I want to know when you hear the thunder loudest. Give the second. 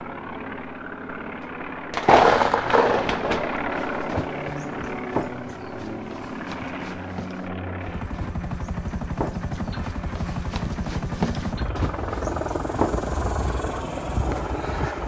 2 s.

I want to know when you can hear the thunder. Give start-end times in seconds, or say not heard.
2.0-4.5.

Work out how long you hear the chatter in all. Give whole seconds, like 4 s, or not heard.
not heard.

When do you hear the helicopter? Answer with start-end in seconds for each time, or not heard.
0.0-15.0.